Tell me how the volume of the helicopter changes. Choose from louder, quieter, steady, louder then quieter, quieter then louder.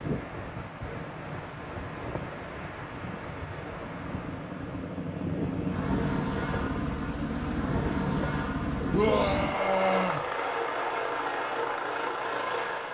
louder.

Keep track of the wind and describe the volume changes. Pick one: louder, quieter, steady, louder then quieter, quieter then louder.
steady.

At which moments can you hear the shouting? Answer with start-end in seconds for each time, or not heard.
8.9-10.2.